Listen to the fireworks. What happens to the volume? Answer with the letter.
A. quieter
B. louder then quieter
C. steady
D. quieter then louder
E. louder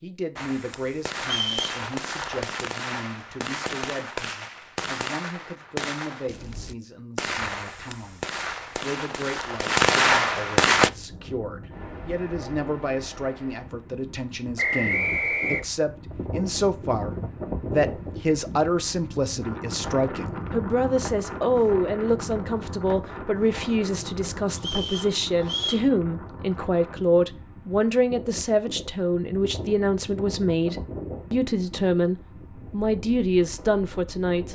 E.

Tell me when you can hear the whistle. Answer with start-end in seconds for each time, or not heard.
1.2-1.8, 14.6-15.7, 24.6-25.9.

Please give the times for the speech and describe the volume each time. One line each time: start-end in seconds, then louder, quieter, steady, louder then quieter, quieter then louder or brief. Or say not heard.
0.0-34.4 louder.